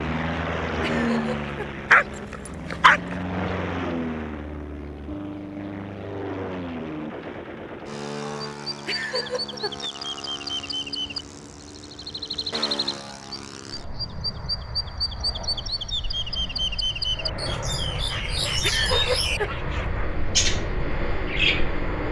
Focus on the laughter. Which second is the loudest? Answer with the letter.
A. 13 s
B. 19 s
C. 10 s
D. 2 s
B.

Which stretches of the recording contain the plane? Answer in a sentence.
You can hear the plane from 0.0 to 22.0 s.